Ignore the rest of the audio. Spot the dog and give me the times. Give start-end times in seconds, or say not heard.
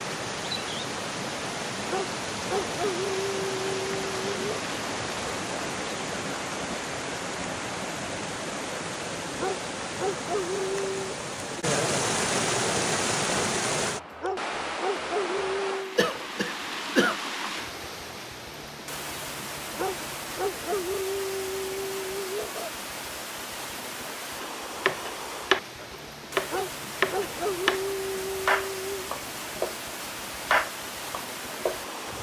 1.9-4.4, 9.3-11.2, 14.2-15.9, 19.8-22.7, 26.5-29.1.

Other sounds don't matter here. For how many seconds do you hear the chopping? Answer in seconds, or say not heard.
7 s.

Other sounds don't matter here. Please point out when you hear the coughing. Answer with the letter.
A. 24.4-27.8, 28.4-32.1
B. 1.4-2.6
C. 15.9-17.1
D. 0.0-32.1
C.